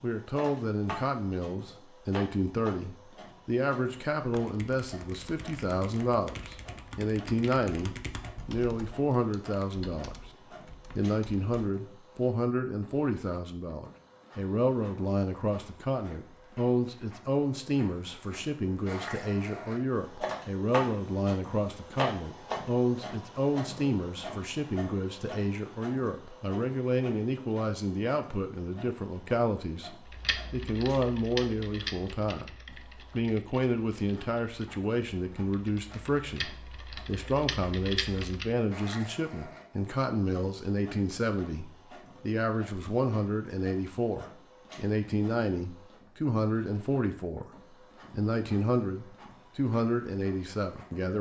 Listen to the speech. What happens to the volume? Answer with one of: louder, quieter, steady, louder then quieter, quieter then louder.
steady.